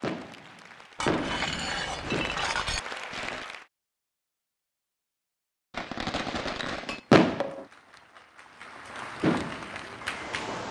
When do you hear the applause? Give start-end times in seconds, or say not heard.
0.0-3.6, 6.9-10.6.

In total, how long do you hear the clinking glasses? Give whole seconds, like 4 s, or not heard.
3 s.